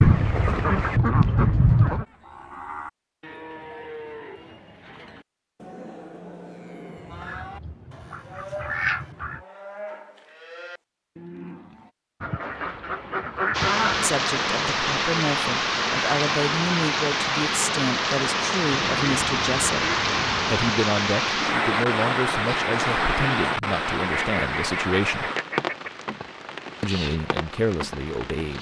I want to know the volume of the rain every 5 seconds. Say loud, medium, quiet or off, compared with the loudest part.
off, off, loud, loud, loud, medium.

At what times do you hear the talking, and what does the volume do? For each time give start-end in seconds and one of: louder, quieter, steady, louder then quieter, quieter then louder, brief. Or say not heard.
14.0-25.3 steady
26.8-28.5 brief.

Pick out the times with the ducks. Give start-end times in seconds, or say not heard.
0.0-2.0, 7.0-9.4, 12.2-14.1, 18.7-20.8, 24.0-25.9.